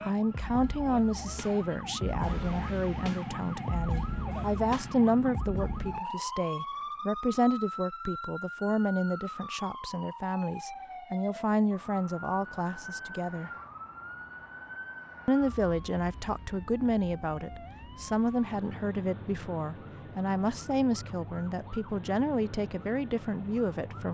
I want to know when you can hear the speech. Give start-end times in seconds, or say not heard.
0.0-13.5, 15.2-24.0.